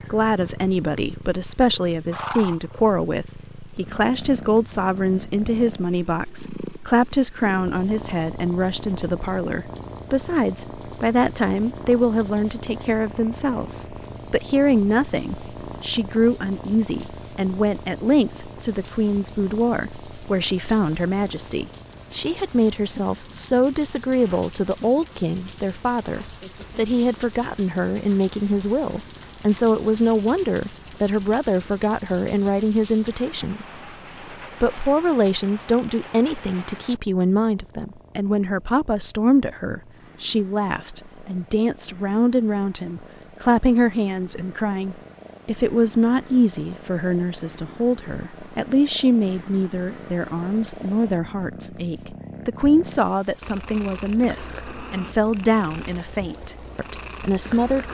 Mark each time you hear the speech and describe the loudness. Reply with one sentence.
The speech can be heard from 0.1 to 33.8 s, at a steady volume; and from 34.6 to 57.8 s, at a steady volume.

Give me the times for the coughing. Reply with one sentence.
The coughing can't be heard in this clip.